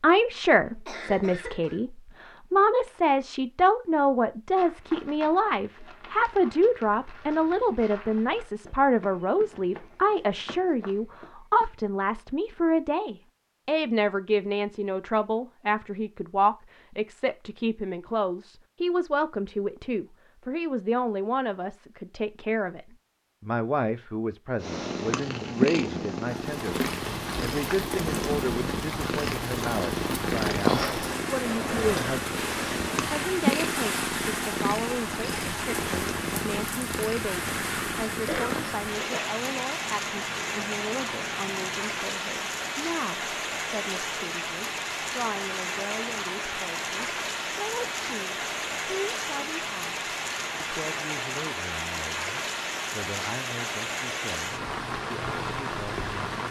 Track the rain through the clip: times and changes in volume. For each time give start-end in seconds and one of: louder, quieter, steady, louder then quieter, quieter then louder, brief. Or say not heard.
26.3-56.4 steady.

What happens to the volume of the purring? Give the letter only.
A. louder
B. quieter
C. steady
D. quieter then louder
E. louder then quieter
B.